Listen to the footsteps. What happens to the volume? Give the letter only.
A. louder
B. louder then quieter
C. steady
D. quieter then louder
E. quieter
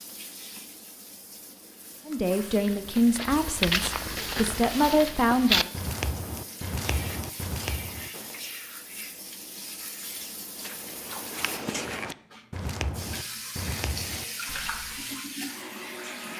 E.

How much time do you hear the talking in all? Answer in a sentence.
The talking can be heard for 4 seconds in total.